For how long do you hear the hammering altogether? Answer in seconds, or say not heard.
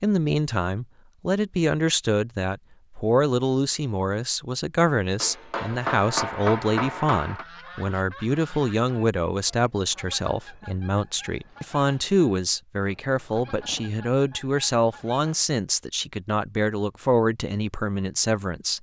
2 s.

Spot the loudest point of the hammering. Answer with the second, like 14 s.
6 s.